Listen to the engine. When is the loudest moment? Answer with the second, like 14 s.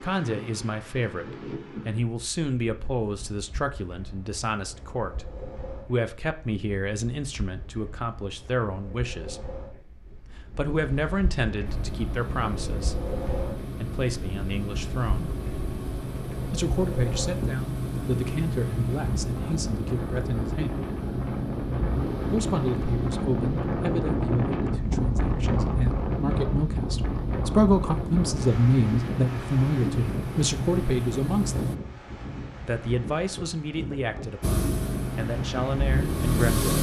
36 s.